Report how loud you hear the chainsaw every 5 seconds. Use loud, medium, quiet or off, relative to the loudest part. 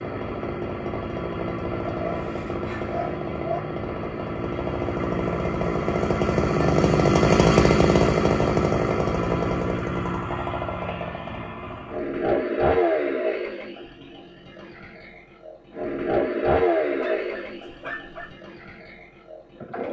medium, loud, medium, medium.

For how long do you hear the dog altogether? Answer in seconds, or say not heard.
3 s.